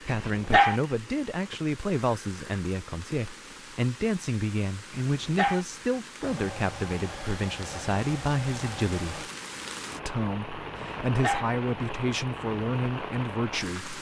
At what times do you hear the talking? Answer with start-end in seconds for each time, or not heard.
0.0-9.3, 10.1-13.9.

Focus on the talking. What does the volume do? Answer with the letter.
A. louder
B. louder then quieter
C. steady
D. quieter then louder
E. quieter
C.